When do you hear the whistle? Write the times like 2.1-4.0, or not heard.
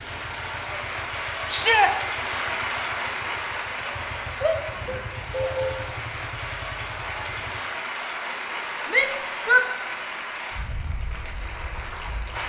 not heard.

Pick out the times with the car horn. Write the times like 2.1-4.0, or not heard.
4.7-5.8.